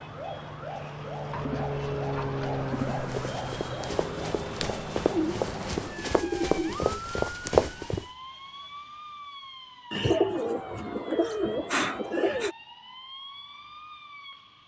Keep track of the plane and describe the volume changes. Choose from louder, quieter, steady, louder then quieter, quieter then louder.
louder then quieter.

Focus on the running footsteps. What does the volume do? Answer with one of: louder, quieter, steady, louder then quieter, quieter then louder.
louder.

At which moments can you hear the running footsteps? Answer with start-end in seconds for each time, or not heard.
2.8-8.1.